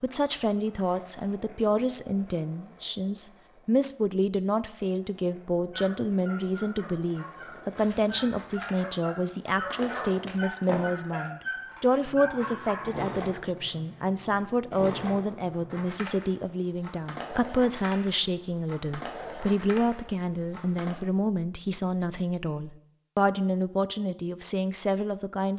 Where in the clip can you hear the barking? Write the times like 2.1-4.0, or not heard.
5.7-13.1.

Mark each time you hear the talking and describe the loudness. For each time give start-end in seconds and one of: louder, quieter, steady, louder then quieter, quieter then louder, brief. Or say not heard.
0.0-25.5 steady.